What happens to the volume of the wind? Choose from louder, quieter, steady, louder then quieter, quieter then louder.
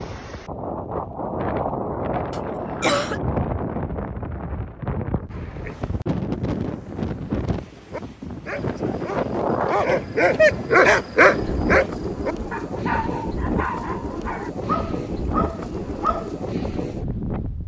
steady.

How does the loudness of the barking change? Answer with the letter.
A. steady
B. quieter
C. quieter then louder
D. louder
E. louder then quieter
E.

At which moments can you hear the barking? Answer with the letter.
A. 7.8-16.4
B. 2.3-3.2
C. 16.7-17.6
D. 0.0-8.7
A.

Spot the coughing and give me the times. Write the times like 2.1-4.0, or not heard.
2.3-3.2.